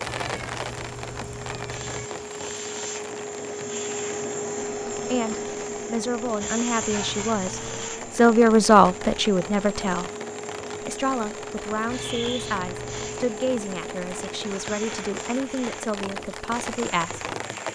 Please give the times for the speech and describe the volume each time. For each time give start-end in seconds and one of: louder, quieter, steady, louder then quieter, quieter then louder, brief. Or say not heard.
5.0-10.1 louder then quieter
10.8-17.2 steady.